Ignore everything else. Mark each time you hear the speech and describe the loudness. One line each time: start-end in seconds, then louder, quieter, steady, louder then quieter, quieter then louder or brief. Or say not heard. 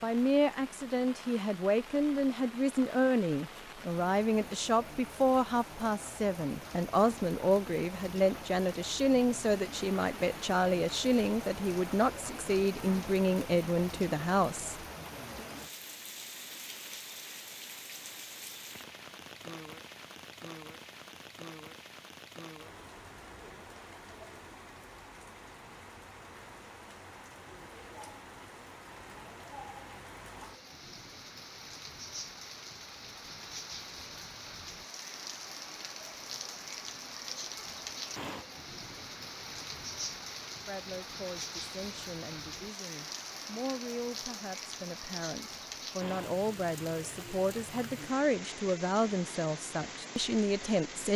0.0-14.8 steady
40.6-51.1 louder.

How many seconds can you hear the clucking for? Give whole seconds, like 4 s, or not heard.
not heard.